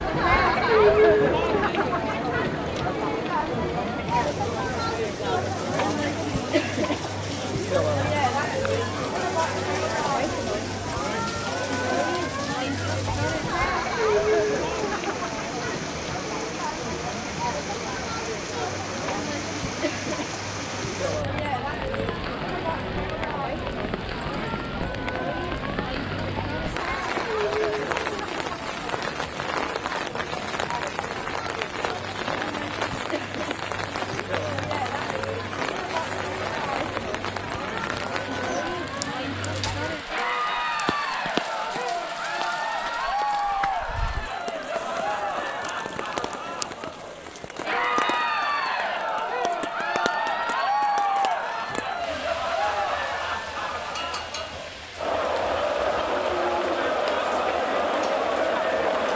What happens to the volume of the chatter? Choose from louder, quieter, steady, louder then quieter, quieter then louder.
quieter then louder.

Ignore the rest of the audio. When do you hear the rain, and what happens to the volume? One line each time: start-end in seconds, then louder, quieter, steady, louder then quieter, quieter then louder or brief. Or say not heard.
0.0-59.1 louder then quieter.